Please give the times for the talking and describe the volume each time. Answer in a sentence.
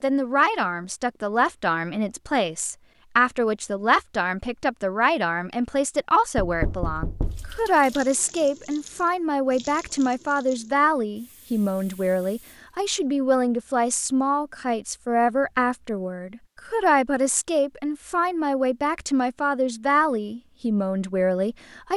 The talking can be heard from 0.0 to 21.9 s, at a steady volume.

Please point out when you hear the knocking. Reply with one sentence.
You can hear the knocking from 6.3 to 7.7 s.